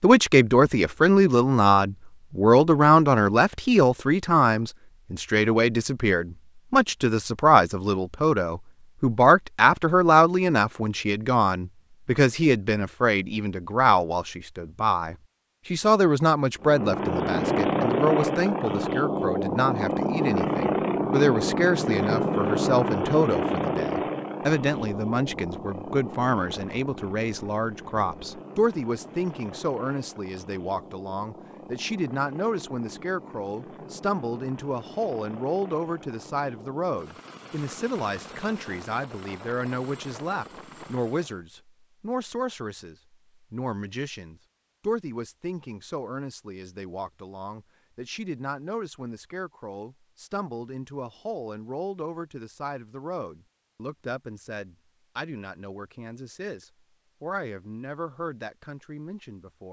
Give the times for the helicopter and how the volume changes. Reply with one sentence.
You can hear the helicopter from 16.6 to 41.5 s, getting quieter.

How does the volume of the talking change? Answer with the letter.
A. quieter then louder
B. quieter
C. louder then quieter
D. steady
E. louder
B.